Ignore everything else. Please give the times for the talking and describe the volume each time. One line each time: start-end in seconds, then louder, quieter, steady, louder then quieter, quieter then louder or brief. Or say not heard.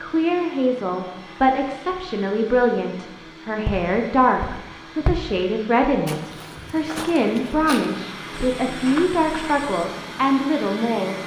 0.0-11.2 steady.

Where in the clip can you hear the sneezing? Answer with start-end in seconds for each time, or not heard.
not heard.